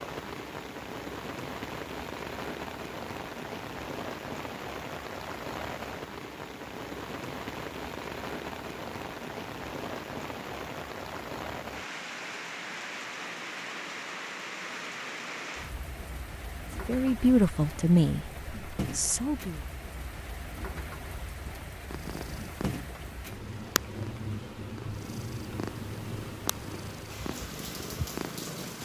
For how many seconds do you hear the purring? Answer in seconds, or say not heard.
7 s.